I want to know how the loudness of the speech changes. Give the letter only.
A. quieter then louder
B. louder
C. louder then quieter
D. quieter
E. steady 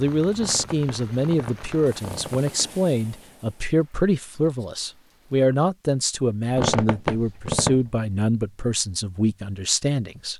E.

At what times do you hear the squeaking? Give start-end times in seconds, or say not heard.
0.3-2.7, 6.5-7.9.